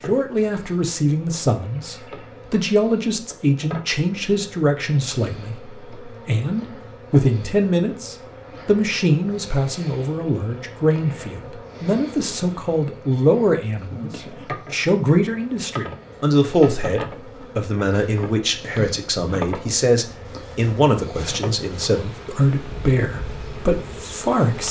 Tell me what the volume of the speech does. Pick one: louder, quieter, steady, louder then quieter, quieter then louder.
steady.